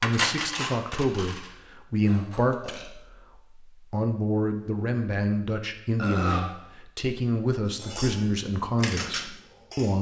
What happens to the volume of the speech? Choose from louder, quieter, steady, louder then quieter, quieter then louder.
steady.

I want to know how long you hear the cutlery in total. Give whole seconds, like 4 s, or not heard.
5 s.